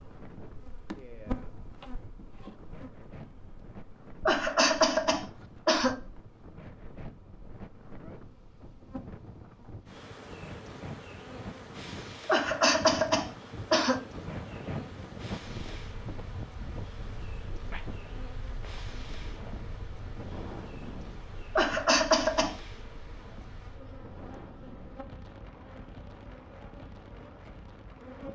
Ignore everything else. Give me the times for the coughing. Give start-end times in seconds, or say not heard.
4.2-6.0, 12.2-14.1, 21.6-22.6.